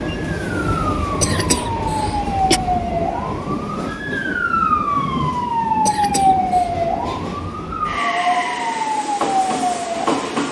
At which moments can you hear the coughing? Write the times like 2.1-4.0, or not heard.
1.2-2.6, 5.8-6.7.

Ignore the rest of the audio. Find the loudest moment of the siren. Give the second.
6 s.